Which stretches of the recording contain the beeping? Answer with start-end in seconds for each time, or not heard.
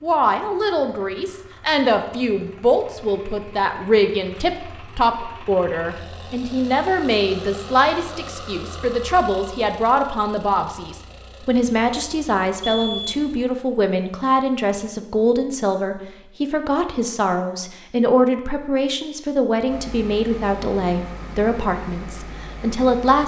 12.6-13.2.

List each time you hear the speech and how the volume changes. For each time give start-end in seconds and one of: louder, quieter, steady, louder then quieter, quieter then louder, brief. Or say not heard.
0.0-23.2 steady.